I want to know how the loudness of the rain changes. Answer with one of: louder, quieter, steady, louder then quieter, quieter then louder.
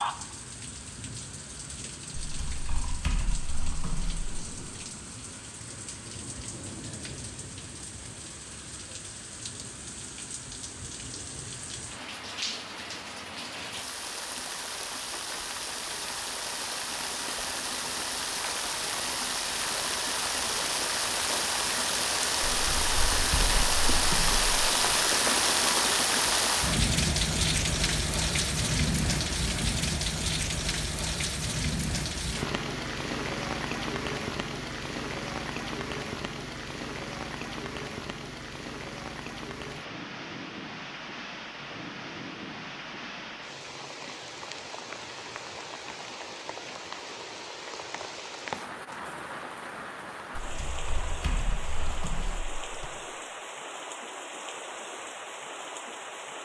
louder then quieter.